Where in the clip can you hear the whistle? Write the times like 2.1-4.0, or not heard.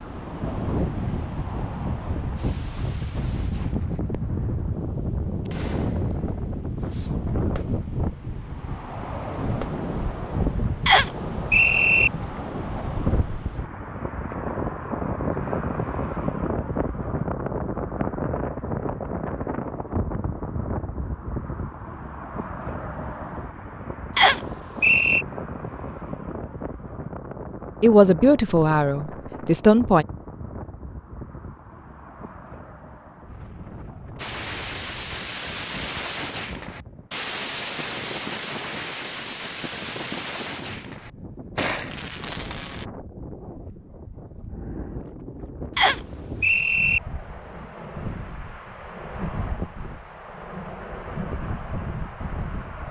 10.8-12.1, 24.1-25.2, 45.8-47.0.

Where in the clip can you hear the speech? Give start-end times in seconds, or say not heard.
27.8-30.1.